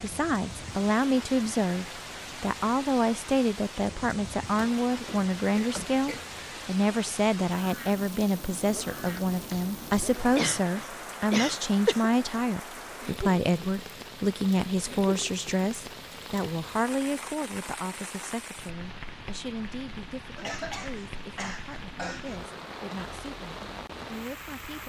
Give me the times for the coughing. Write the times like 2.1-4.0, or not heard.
4.5-6.3, 10.3-12.1, 20.4-22.4.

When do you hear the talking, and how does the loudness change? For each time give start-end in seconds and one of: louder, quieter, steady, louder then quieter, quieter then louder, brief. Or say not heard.
0.0-24.8 quieter.